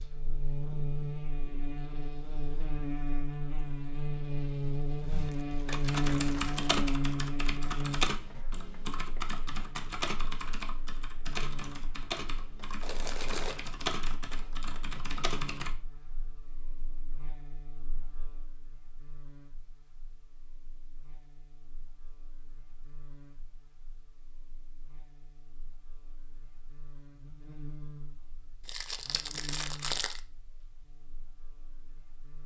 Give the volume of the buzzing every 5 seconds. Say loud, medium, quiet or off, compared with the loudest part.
loud, loud, quiet, quiet, quiet, quiet, quiet.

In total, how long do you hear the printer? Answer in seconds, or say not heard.
not heard.